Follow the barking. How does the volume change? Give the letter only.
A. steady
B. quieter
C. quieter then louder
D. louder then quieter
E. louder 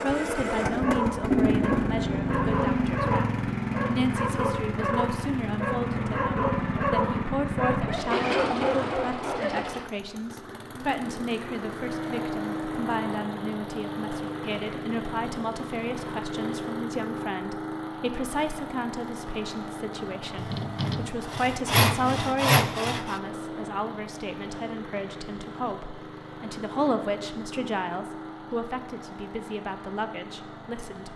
A.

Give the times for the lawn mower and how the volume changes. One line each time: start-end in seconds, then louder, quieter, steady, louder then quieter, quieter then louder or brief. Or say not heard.
0.0-31.1 quieter.